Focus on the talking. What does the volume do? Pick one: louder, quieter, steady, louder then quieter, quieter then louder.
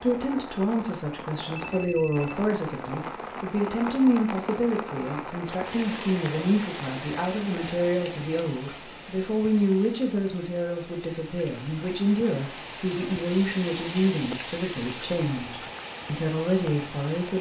steady.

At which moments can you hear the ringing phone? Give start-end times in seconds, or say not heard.
1.6-2.5.